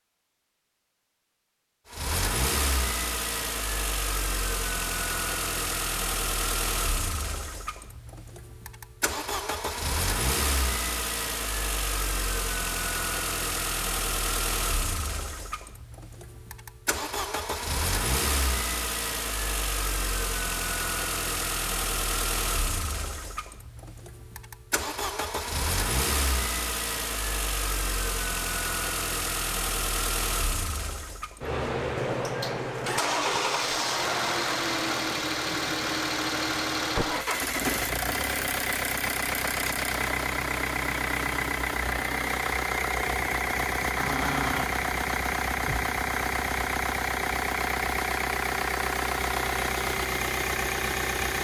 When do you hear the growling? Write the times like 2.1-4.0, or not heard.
44.0-44.8.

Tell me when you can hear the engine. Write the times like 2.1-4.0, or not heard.
1.9-51.4.